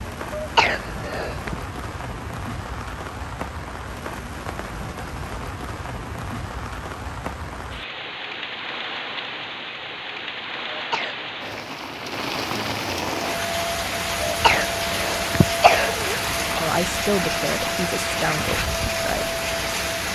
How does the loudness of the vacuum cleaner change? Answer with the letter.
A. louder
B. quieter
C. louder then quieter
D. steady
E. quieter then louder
D.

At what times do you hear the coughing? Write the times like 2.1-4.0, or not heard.
0.3-1.6, 10.7-11.7, 14.2-16.6.